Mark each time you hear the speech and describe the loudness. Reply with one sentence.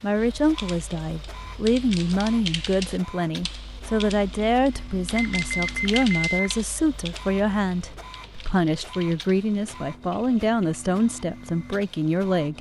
You can hear the speech from 0.0 to 12.5 s, at a steady volume.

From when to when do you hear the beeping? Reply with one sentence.
You can hear the beeping from 5.2 to 6.5 s.